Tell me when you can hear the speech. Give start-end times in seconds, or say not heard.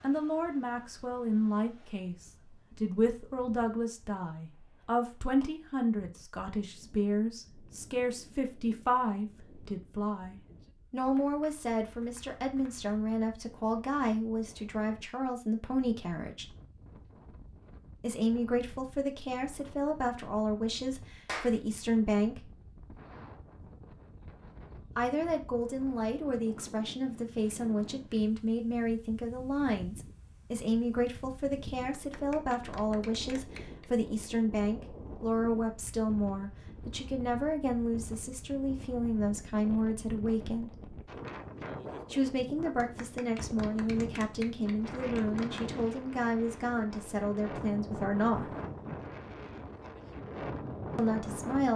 0.0-16.4, 18.0-22.5, 24.9-40.7, 42.1-48.5, 51.0-51.7.